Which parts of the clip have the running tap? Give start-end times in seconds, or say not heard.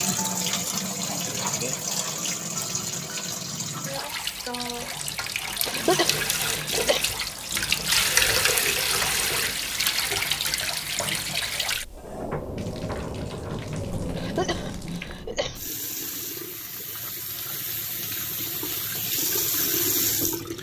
0.0-20.5.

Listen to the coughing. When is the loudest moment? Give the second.
6 s.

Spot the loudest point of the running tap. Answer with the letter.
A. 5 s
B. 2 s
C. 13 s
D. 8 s
D.